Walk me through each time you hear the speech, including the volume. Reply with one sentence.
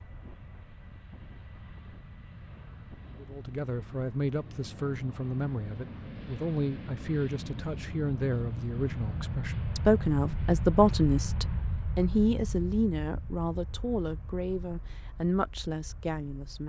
The speech can be heard from 3.2 to 16.6 s, getting louder then quieter.